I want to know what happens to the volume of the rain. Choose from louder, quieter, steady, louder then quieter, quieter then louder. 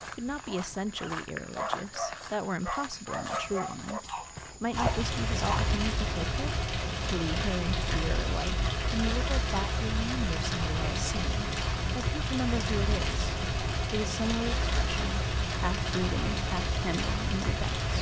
steady.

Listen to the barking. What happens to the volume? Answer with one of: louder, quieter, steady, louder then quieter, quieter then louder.
steady.